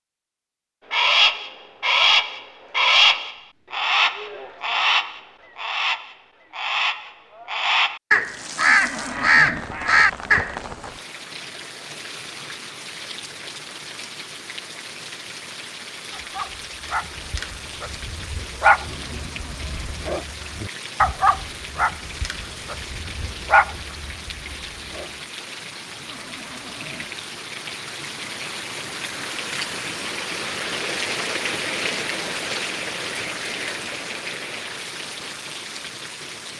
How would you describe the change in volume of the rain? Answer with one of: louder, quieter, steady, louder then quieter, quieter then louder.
louder.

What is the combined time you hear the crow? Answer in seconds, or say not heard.
10 s.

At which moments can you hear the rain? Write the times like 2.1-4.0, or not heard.
8.2-36.5.